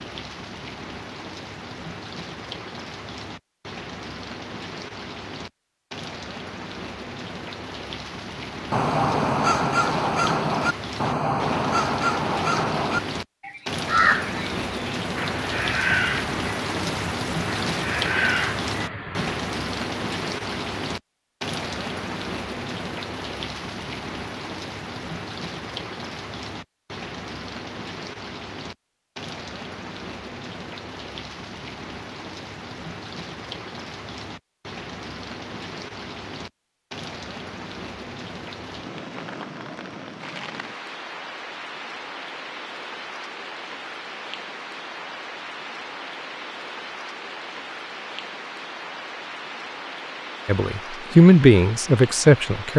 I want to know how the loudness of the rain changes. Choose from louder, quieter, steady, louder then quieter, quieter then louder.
louder then quieter.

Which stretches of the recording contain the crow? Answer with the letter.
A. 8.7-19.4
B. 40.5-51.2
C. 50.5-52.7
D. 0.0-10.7
A.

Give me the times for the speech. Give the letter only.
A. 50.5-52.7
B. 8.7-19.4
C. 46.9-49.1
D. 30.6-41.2
A.